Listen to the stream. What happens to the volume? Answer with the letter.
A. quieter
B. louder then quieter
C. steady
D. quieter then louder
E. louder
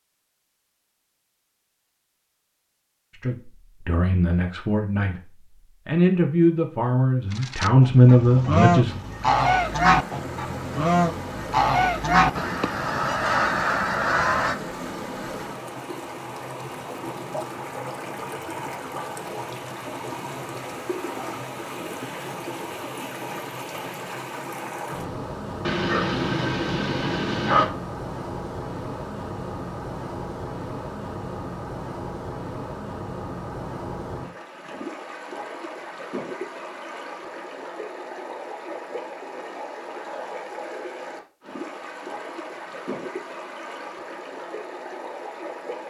C.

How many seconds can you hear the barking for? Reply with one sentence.
You can hear the barking for 2 seconds altogether.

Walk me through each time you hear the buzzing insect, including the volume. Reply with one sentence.
You can't hear the buzzing insect here.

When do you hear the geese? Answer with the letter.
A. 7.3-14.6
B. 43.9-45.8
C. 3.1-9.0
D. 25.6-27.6
A.